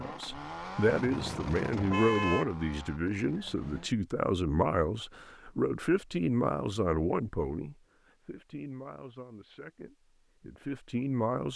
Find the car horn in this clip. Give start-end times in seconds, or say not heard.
0.8-2.5.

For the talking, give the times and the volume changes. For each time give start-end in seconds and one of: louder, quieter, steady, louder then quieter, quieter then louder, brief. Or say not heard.
0.0-11.5 quieter.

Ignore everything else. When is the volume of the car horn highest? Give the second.
2 s.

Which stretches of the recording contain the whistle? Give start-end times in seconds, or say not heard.
not heard.